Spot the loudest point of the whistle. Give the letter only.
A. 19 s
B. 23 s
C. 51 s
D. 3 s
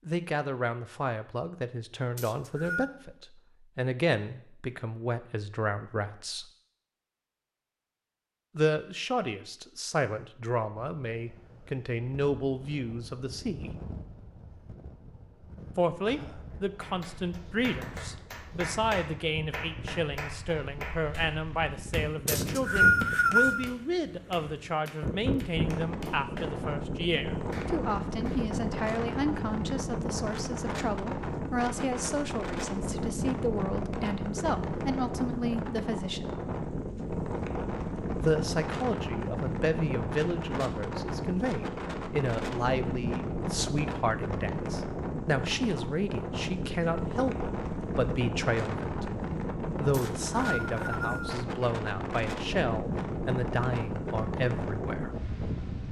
B.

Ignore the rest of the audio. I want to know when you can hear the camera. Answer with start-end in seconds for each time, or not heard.
not heard.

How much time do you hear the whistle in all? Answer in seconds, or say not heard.
4 s.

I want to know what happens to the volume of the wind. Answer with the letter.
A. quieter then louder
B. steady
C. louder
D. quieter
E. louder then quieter
C.